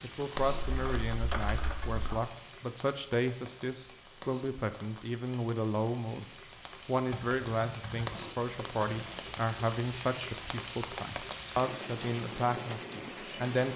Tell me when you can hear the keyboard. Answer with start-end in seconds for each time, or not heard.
0.4-2.2, 7.0-9.4.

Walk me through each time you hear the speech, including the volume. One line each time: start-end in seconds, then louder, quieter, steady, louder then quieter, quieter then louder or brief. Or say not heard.
0.0-6.2 steady
6.8-13.7 steady.